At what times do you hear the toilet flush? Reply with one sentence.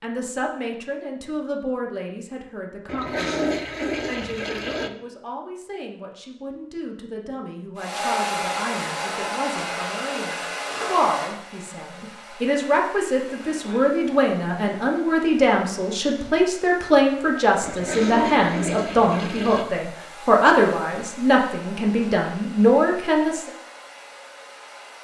The toilet flush can be heard from 2.9 to 4.9 s and from 17.6 to 19.6 s.